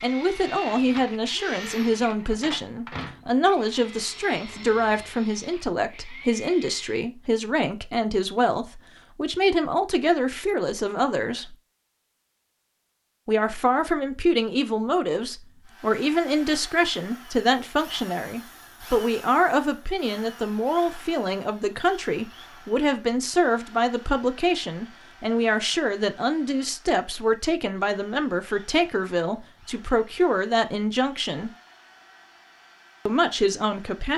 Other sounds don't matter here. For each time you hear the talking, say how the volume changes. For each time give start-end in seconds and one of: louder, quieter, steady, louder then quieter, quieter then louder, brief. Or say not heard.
0.0-11.6 steady
13.2-31.5 steady
33.0-34.1 brief.